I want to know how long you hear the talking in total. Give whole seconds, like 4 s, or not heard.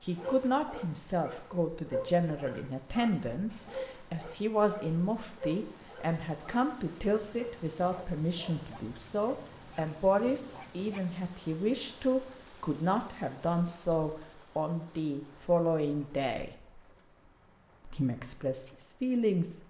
18 s.